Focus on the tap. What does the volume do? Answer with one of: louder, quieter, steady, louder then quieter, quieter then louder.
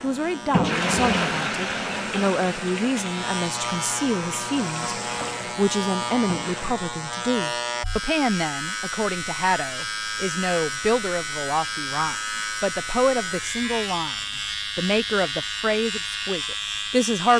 quieter.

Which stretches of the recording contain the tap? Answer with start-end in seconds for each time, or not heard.
0.0-6.8.